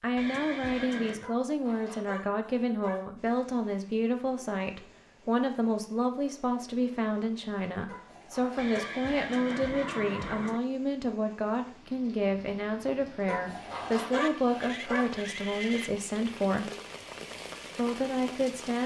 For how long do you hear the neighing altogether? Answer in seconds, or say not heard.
5 s.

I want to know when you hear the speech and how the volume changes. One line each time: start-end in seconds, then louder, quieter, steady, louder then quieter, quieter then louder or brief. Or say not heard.
0.0-16.7 steady
17.8-18.8 brief.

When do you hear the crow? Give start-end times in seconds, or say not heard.
not heard.